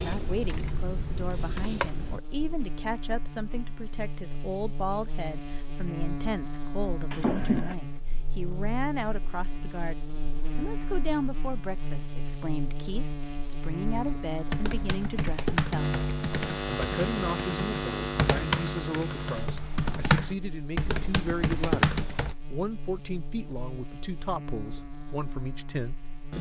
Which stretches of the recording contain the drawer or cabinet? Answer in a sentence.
You can hear the drawer or cabinet from 7.1 to 7.8 s.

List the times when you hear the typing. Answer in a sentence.
The typing can be heard from 0.0 to 2.2 s and from 14.5 to 22.4 s.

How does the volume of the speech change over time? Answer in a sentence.
The loudness of the speech stays about the same.